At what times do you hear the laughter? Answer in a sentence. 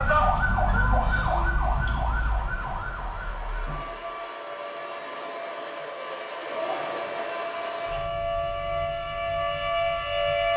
You can hear the laughter from 0.7 to 1.2 s and from 6.4 to 7.8 s.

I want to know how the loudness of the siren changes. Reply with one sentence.
The volume of the siren goes down, then up.